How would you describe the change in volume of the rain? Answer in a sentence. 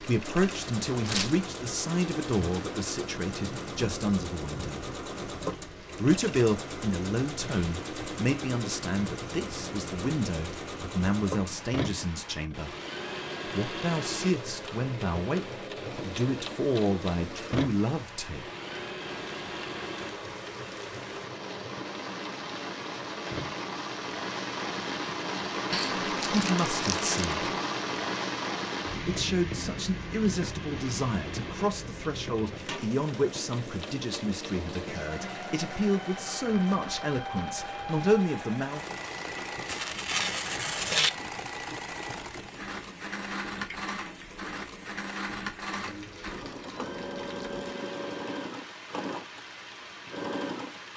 The volume of the rain goes up, then down.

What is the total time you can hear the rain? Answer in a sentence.
You can hear the rain for 51 seconds altogether.